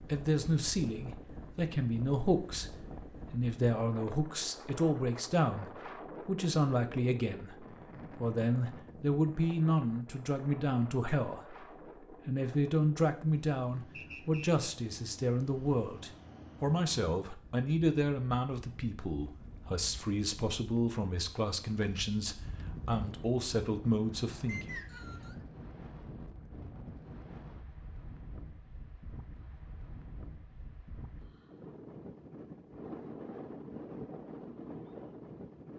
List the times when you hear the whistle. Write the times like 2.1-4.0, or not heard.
13.9-14.5, 24.4-25.4.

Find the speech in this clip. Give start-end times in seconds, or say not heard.
0.0-24.7.